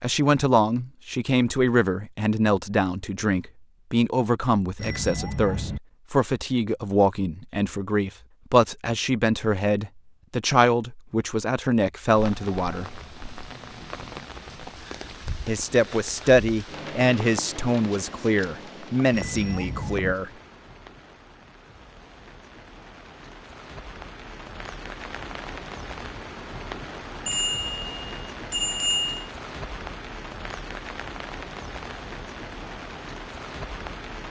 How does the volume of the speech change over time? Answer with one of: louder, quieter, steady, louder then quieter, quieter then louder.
steady.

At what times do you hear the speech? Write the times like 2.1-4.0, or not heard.
0.0-12.9, 15.4-20.3.